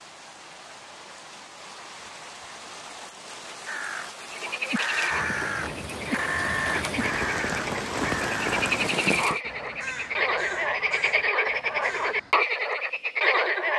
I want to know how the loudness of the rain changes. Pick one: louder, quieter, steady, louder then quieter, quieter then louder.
louder.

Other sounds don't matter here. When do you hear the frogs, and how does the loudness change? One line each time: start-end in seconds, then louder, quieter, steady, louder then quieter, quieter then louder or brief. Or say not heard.
4.2-13.7 louder.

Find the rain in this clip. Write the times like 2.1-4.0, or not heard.
0.0-9.4.